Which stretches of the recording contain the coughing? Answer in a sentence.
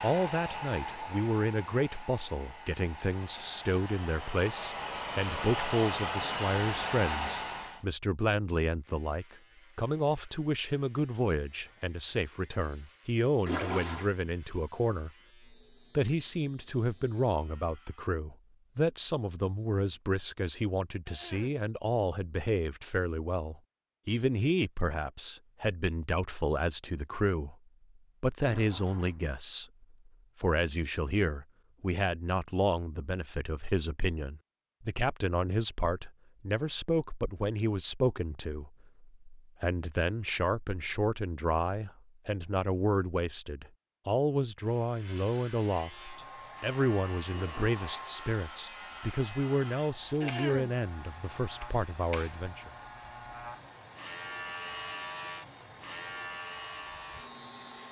The coughing can be heard from 21.1 to 21.6 s and from 50.2 to 50.8 s.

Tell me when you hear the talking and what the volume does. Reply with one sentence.
You can hear the talking from 0.0 to 15.1 s, at a steady volume; from 15.9 to 27.6 s, at a steady volume; and from 28.2 to 52.7 s, at a steady volume.